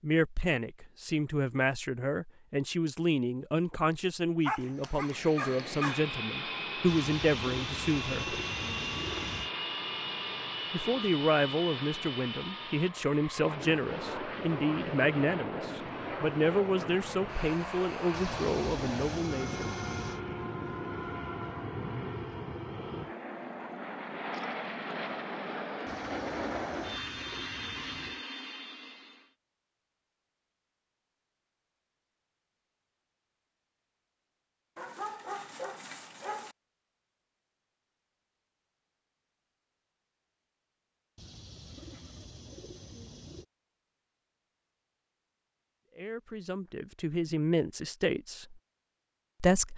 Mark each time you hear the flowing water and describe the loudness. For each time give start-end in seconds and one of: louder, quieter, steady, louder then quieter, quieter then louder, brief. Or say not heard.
not heard.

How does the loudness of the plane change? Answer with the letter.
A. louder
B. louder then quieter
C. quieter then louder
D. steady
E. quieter
D.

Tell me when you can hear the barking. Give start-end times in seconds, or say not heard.
4.5-6.0, 34.8-36.5.